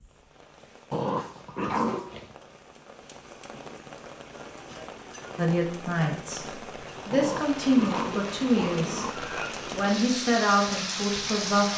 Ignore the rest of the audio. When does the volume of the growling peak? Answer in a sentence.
The volume of the growling peaks at 2 seconds.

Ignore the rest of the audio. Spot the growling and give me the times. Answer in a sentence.
You can hear the growling from 0.9 to 2.4 s and from 7.1 to 9.1 s.